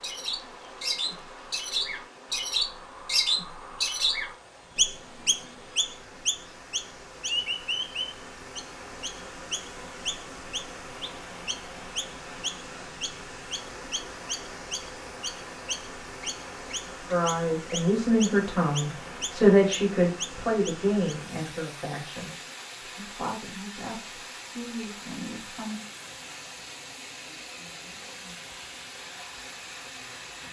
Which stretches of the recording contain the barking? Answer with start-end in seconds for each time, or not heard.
not heard.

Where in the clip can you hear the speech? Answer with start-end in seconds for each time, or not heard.
17.1-25.8.